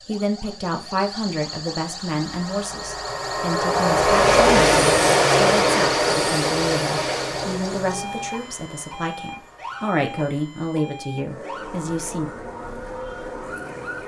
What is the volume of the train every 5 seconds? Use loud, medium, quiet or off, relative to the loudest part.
loud, loud, quiet.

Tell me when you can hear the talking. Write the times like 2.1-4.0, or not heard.
0.1-12.3.